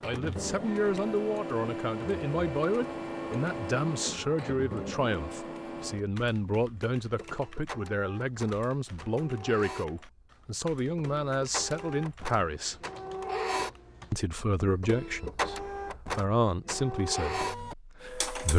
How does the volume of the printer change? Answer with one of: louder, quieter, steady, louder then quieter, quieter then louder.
quieter then louder.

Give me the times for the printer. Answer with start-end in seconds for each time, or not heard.
0.0-18.5.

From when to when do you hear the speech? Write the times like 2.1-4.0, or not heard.
0.0-12.8, 14.1-18.5.